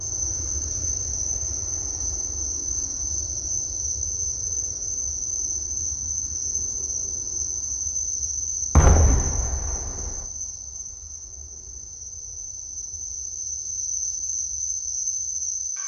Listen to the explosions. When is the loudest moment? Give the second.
9 s.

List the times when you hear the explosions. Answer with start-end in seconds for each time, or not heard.
8.8-10.2.